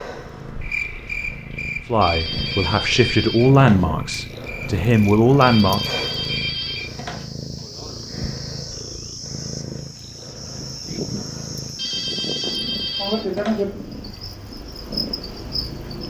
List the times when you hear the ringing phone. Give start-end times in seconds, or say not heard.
2.0-3.9, 5.4-7.2, 11.8-13.7.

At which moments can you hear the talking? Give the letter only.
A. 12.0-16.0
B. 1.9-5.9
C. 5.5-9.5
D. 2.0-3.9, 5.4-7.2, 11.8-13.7
B.